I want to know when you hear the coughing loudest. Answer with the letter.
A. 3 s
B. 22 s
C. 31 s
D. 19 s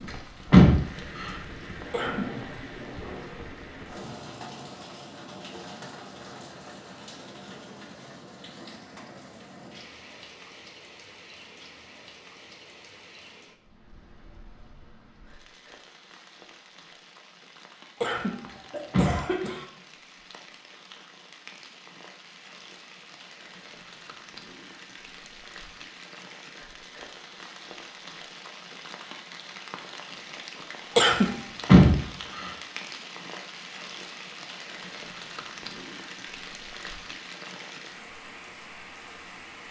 C.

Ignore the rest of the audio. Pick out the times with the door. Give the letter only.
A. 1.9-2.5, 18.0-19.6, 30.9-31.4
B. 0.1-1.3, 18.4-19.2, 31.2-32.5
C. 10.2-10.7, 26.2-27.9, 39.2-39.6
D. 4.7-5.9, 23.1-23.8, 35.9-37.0
B.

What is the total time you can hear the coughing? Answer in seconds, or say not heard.
3 s.